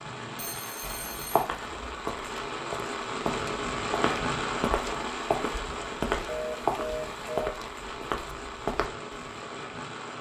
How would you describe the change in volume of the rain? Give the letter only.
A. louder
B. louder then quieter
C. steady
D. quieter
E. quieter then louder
B.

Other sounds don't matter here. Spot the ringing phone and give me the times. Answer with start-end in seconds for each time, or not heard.
0.3-1.4, 6.2-7.5.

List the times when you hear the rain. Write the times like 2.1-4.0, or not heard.
0.0-10.1.